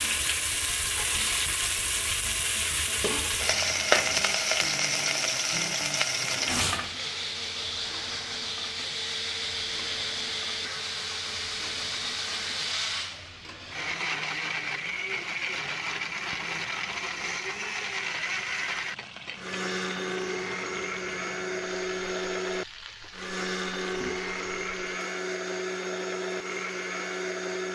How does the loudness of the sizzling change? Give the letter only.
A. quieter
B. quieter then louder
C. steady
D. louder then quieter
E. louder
A.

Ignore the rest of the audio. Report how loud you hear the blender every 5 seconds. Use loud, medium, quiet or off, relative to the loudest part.
quiet, loud, loud, loud, loud, loud.